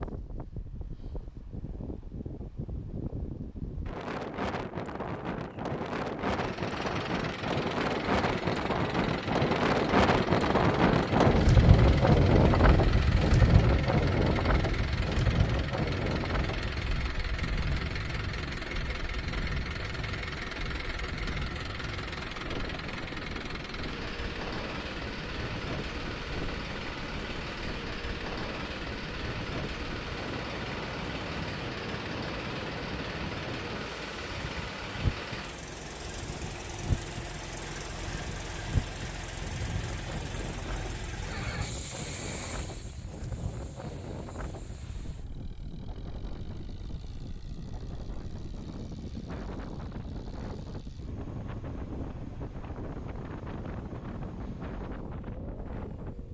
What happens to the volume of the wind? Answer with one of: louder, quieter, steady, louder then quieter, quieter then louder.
quieter.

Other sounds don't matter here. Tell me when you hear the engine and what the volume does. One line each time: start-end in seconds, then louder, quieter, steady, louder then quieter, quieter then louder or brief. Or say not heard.
6.3-56.2 quieter.